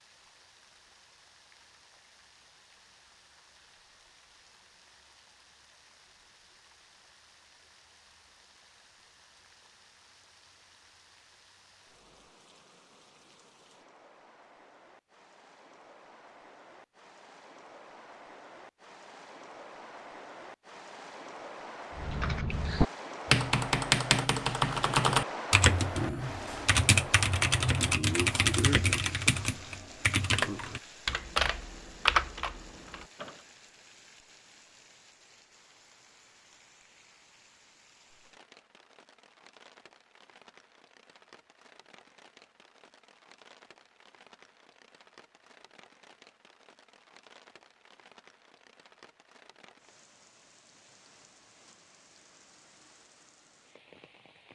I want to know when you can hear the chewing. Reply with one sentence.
The chewing can't be heard in this clip.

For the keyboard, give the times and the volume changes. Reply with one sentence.
The keyboard can be heard from 21.9 to 33.4 s, at a steady volume.